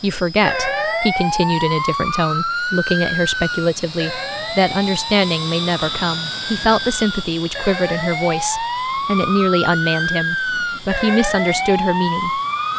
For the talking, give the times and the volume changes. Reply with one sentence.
You can hear the talking from 0.0 to 12.7 s, at a steady volume.